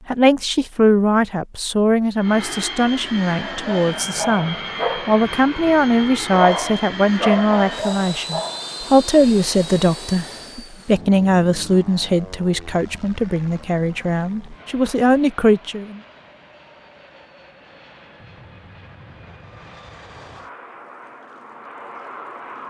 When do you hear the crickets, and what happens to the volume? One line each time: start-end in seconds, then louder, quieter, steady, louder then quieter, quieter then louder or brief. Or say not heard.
not heard.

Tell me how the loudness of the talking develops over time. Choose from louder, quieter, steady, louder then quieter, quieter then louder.
steady.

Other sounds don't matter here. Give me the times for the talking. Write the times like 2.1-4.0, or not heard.
0.1-16.0.